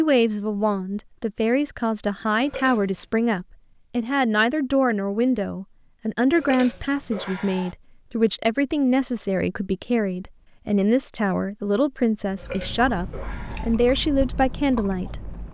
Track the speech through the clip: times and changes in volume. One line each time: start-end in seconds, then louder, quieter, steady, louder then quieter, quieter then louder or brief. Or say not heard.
0.0-15.2 steady.